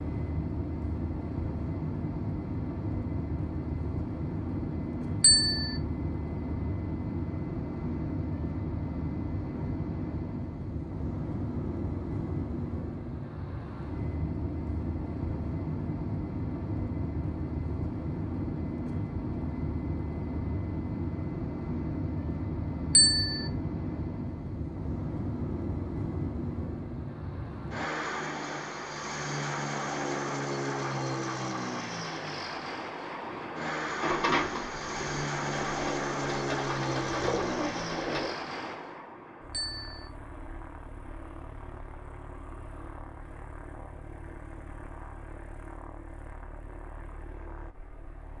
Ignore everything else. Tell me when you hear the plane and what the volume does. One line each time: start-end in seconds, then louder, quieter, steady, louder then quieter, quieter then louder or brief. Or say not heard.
0.0-48.3 quieter.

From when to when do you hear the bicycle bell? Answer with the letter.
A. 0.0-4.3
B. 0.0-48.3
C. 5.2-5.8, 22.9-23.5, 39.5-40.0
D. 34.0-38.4
C.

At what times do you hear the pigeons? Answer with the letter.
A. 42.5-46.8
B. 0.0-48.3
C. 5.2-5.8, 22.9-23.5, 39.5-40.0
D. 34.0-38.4
D.